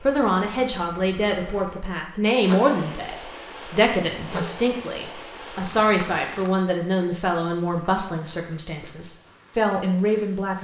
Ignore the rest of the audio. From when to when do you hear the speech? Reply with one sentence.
You can hear the speech from 0.0 to 10.5 s.